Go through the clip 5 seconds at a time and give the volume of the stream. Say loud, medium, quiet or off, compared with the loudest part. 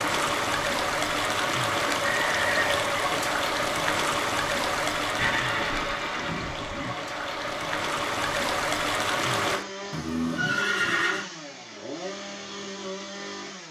loud, loud, off.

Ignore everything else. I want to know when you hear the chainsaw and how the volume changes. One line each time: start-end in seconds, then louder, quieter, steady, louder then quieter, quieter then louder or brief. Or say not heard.
9.2-13.6 steady.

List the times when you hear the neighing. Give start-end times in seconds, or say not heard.
2.0-2.9, 5.2-7.0, 9.9-11.2.